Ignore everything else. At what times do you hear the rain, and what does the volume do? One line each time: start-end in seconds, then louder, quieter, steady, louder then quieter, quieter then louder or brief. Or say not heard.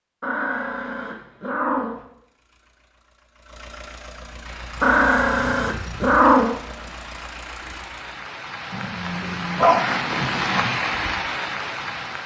4.4-12.2 louder.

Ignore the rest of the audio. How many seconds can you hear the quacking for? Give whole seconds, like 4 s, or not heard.
not heard.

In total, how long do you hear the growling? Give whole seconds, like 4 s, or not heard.
6 s.